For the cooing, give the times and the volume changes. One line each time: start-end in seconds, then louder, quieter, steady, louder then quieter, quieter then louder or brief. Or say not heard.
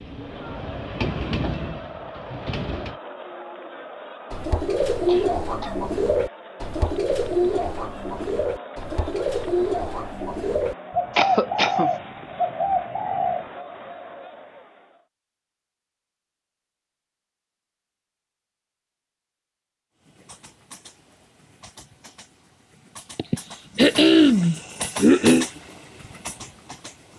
4.3-13.5 steady.